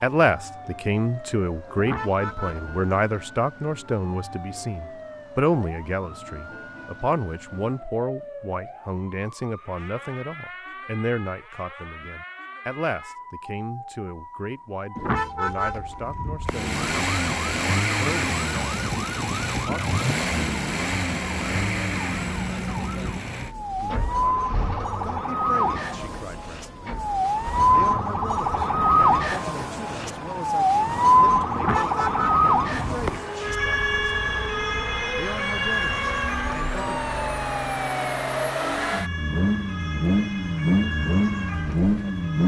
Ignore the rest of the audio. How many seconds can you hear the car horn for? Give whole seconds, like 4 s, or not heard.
4 s.